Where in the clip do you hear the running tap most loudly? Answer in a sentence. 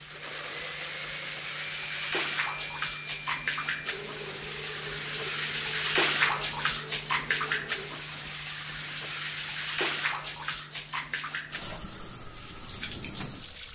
The loudest moment of the running tap is at 6 seconds.